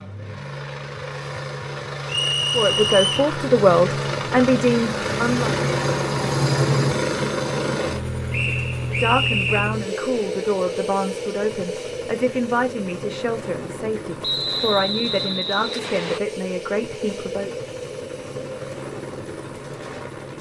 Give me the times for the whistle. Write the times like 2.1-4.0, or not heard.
2.0-3.3, 8.3-9.8, 14.2-16.2.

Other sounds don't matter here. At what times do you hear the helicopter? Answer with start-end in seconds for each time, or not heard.
0.0-20.3.